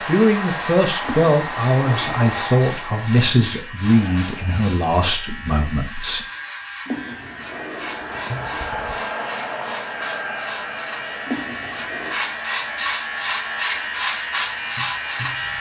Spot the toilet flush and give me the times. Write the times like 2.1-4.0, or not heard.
1.0-2.2, 6.8-8.8, 11.2-12.2.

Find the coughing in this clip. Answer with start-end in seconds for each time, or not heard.
not heard.